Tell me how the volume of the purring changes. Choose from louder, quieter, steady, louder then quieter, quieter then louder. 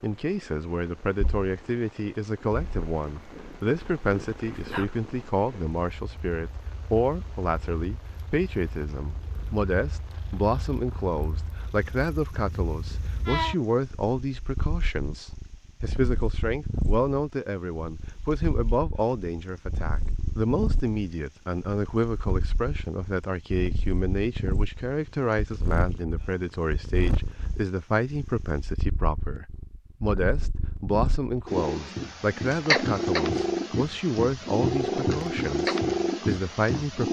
louder.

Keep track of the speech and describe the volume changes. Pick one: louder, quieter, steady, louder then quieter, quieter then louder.
steady.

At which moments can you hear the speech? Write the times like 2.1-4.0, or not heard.
0.0-37.0.